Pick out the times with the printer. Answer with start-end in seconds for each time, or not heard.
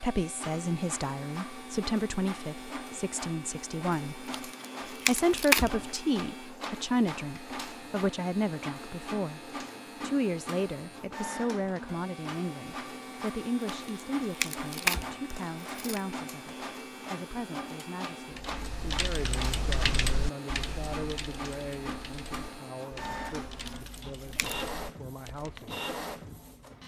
0.0-26.8.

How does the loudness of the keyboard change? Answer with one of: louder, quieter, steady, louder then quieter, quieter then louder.
quieter.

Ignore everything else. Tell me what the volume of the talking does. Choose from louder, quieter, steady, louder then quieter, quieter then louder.
quieter.